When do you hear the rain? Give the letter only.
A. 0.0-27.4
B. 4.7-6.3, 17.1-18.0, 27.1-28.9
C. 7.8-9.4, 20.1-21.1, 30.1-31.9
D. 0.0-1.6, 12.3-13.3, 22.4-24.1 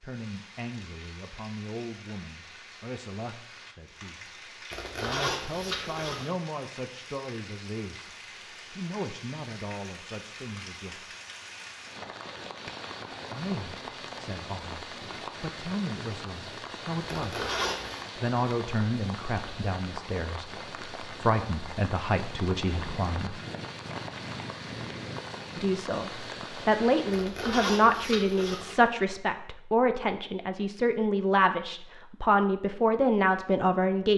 A.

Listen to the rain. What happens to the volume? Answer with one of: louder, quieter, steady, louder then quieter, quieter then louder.
louder.